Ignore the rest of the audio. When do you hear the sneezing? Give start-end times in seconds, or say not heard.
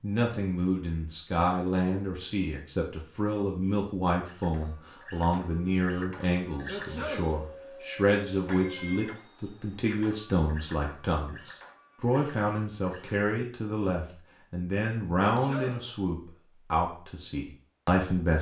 6.7-7.4, 15.2-15.9.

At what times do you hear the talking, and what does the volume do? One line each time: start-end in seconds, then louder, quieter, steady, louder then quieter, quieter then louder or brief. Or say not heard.
0.0-18.3 steady.